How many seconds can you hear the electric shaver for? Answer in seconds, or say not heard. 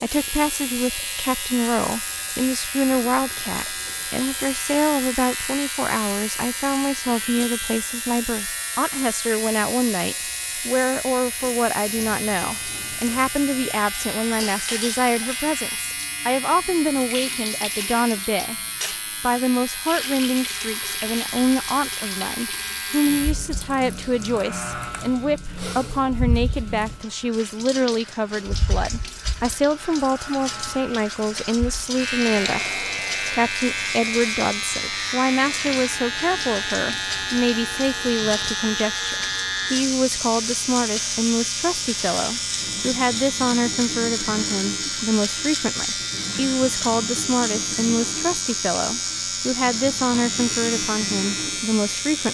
52 s.